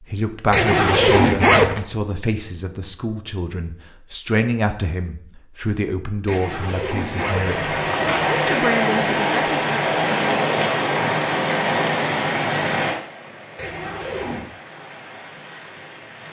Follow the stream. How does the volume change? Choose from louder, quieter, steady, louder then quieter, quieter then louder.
quieter.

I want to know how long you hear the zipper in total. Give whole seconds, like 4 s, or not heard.
4 s.